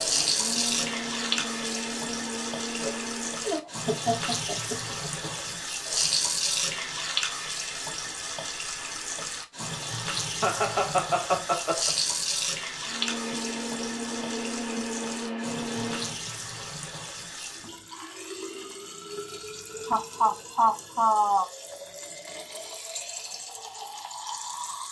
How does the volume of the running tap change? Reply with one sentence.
The volume of the running tap goes down.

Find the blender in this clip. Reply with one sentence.
The blender can be heard from 0.0 to 3.5 s and from 12.8 to 16.1 s.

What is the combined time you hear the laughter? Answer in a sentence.
The laughter can be heard for 6 seconds in total.